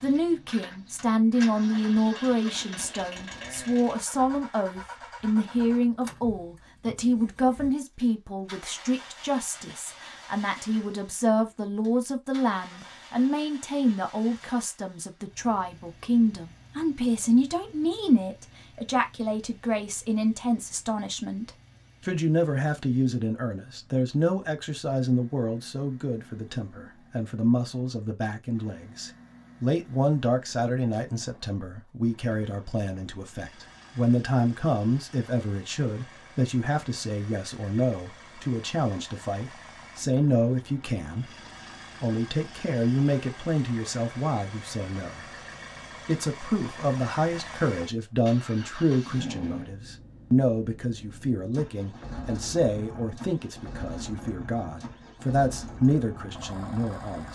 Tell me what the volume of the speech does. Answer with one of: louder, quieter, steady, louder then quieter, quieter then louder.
steady.